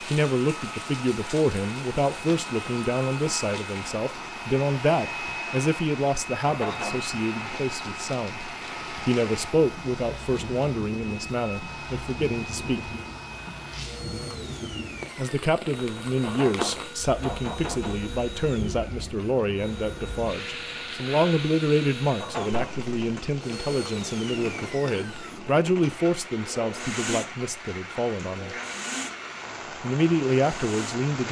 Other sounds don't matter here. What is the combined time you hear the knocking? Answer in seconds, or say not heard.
3 s.